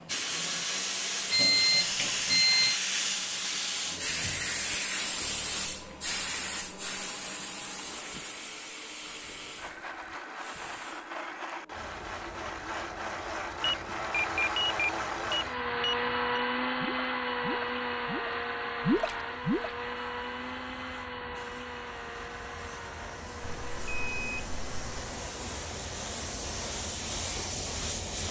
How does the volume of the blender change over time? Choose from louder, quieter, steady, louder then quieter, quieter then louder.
louder then quieter.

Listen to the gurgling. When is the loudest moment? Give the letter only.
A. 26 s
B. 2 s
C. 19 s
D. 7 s
C.